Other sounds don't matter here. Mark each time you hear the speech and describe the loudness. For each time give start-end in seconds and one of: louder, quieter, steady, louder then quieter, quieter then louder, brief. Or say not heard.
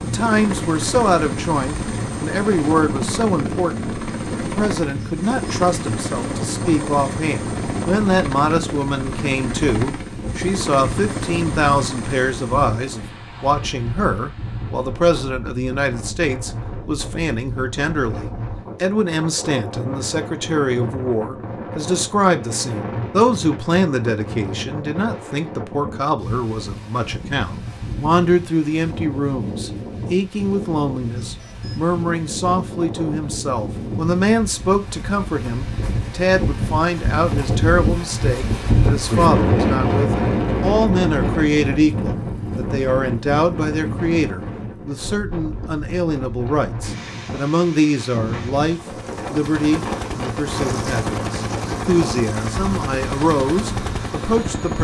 0.0-54.7 steady.